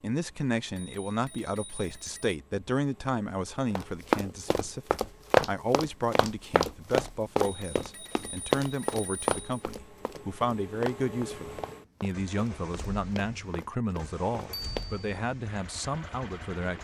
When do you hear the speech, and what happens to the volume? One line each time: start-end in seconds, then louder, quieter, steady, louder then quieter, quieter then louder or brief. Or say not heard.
0.0-16.7 steady.